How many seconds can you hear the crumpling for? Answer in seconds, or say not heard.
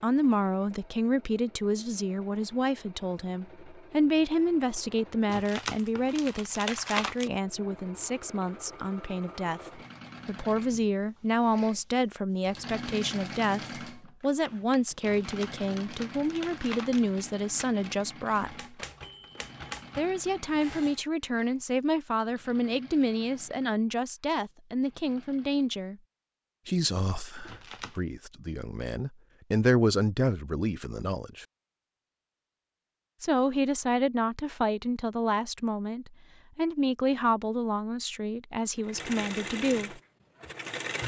5 s.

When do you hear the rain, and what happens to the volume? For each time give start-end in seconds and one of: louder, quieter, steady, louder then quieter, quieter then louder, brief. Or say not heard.
not heard.